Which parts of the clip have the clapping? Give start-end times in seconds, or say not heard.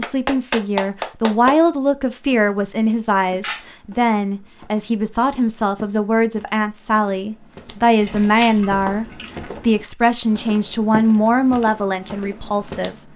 0.0-1.6.